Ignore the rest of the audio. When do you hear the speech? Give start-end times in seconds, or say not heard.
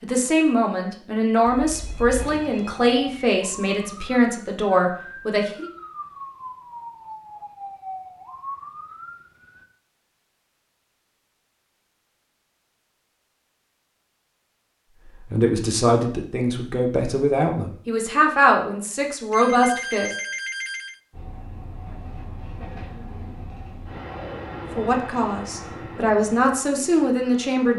0.0-5.7, 15.3-20.1, 24.8-27.7.